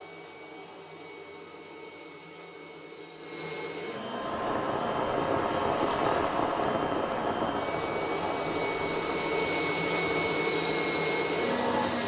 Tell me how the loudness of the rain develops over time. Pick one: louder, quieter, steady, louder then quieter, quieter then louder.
quieter.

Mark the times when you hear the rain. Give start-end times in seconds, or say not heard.
4.2-12.0.